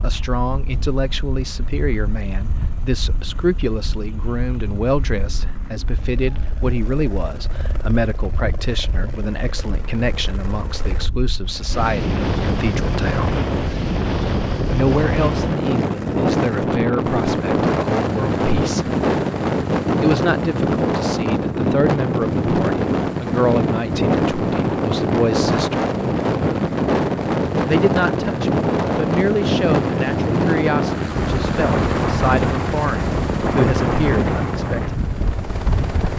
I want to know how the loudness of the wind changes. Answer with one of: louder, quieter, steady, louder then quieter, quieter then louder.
louder.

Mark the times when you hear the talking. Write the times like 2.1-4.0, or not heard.
0.0-13.3, 14.7-18.9, 20.0-25.9, 27.6-35.0.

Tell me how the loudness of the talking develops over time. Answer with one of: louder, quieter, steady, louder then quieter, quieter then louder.
steady.